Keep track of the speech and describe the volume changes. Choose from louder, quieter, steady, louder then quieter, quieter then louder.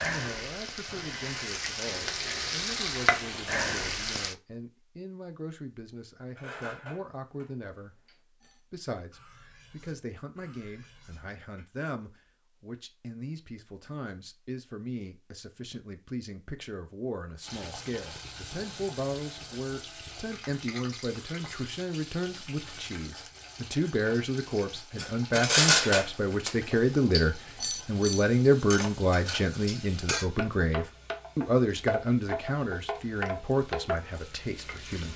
louder.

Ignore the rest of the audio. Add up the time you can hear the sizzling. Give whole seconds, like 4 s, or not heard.
22 s.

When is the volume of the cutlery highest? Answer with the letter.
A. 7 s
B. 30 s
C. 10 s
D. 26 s
D.